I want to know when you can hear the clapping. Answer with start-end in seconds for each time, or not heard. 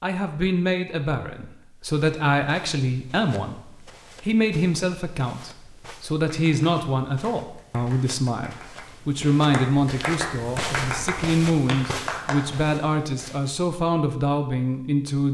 6.2-12.8.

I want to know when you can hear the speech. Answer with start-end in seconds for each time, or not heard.
0.0-15.2.